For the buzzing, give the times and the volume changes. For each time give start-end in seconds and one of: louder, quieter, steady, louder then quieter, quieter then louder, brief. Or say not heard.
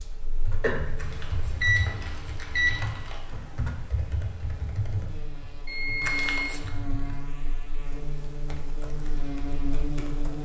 0.0-10.4 quieter then louder.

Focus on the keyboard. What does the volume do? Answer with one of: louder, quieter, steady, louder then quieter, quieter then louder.
quieter.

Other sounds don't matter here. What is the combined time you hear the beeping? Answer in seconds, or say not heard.
3 s.